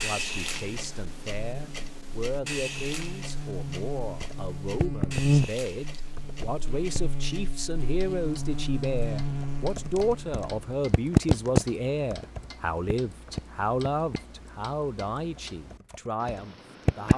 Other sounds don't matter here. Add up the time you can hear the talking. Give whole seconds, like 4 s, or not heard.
17 s.